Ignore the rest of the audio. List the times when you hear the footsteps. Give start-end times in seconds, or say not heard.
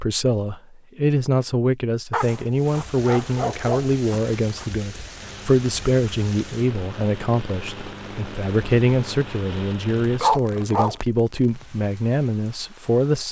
not heard.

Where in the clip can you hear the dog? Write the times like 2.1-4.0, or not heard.
2.1-4.7, 10.2-10.9.